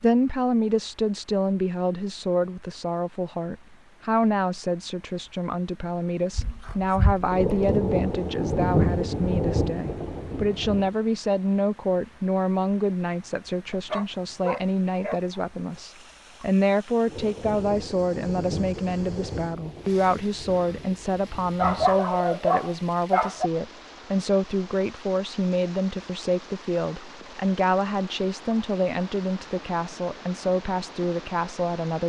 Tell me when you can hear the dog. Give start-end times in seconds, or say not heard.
6.3-7.8, 13.7-15.4, 21.6-23.5.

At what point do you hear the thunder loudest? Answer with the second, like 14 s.
9 s.